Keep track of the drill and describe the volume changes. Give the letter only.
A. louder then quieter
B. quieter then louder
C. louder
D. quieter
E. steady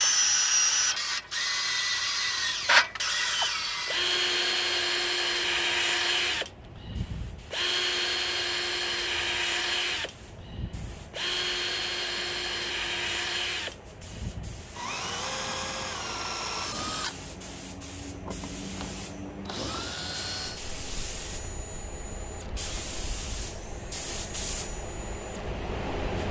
D.